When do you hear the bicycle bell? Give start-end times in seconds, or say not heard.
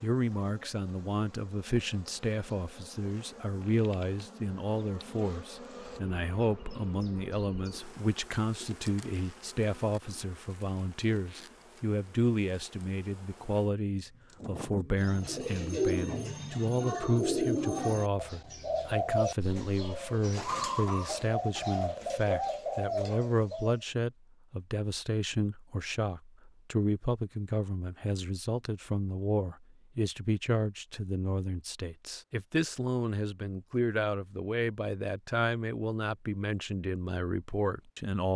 not heard.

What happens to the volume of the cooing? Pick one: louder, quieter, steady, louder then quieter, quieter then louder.
steady.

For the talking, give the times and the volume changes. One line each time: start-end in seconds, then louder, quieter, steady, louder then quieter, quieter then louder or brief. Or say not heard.
0.0-38.3 steady.